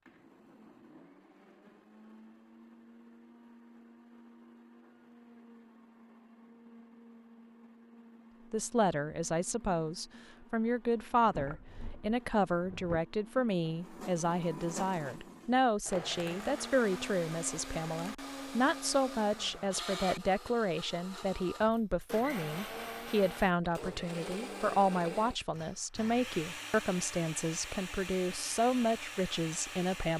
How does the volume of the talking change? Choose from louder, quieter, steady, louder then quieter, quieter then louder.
steady.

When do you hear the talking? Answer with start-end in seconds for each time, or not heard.
8.5-30.1.